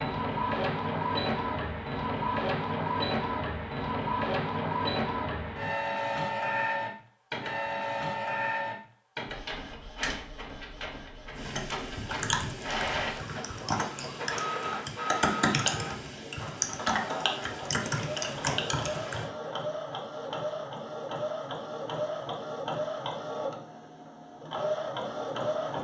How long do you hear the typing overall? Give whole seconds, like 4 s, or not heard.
8 s.